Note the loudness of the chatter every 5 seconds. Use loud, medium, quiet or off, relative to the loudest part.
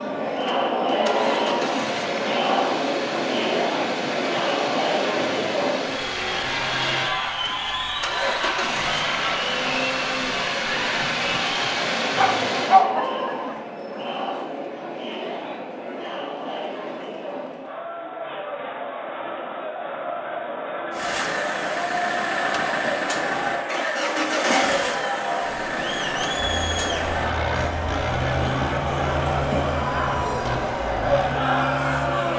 loud, loud, medium, medium, medium, loud, loud.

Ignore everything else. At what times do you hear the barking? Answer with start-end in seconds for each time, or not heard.
12.2-13.6.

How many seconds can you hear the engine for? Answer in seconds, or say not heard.
24 s.